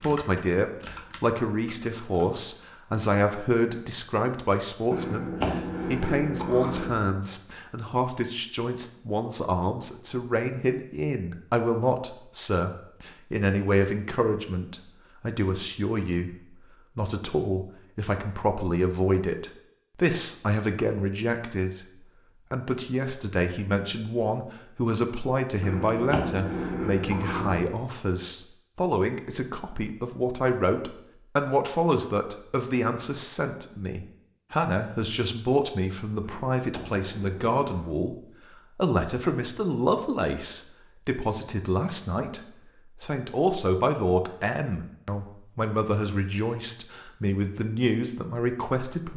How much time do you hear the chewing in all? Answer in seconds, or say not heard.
6 s.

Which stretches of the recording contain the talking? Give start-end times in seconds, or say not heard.
0.0-21.9, 22.5-49.1.